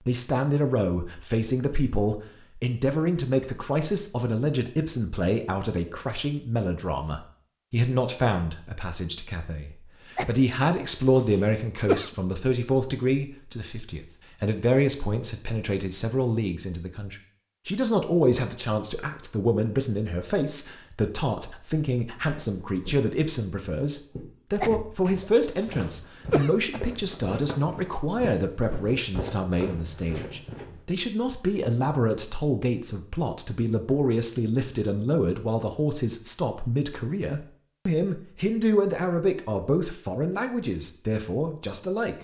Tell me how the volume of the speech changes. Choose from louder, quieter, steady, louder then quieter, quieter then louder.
steady.